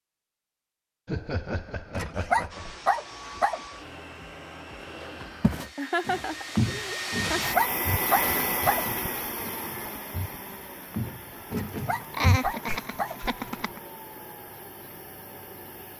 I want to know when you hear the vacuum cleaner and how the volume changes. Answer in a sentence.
You can hear the vacuum cleaner from 2.5 to 15.9 s, getting louder then quieter.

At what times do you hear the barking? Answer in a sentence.
The barking can be heard from 1.9 to 3.6 s, from 7.2 to 8.8 s and from 11.5 to 13.2 s.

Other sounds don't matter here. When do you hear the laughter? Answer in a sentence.
You can hear the laughter from 1.1 to 2.8 s, from 5.8 to 7.5 s and from 12.1 to 13.8 s.